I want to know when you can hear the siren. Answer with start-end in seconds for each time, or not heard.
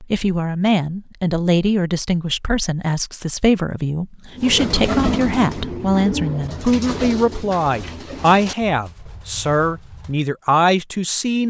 not heard.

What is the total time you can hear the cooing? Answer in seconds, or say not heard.
6 s.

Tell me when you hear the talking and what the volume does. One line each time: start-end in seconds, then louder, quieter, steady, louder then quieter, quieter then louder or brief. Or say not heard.
0.0-11.4 steady.